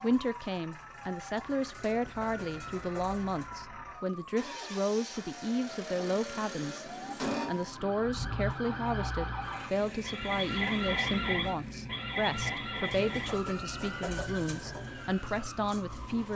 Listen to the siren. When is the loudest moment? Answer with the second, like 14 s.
11 s.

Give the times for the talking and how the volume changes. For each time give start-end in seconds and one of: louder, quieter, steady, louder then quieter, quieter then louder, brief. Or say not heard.
0.0-16.3 steady.